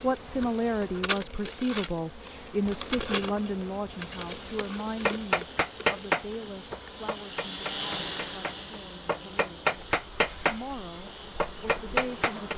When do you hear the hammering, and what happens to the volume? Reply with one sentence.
You can hear the hammering from 5.0 to 12.5 s, getting quieter then louder.